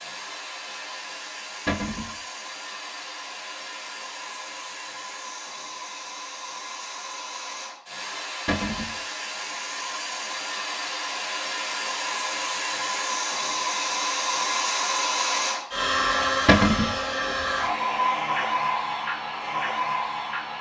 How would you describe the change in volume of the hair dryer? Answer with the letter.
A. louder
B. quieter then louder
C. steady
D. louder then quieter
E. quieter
A.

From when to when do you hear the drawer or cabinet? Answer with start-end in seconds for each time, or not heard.
1.6-2.1, 8.4-8.9, 16.4-16.9.